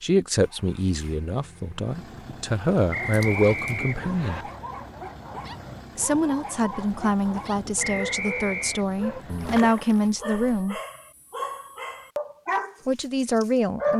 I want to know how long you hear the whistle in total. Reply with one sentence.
You can hear the whistle for 3 seconds altogether.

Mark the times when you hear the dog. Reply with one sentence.
You can hear the dog from 2.9 to 13.9 s.